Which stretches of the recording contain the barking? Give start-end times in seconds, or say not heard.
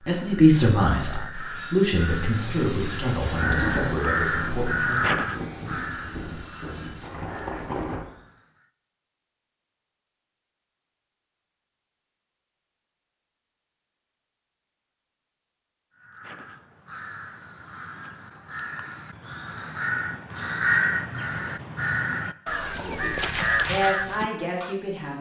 not heard.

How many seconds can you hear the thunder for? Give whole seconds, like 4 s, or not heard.
5 s.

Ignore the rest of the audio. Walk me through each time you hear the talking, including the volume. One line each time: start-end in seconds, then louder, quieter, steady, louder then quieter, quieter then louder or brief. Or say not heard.
0.0-5.0 quieter
22.7-25.1 brief.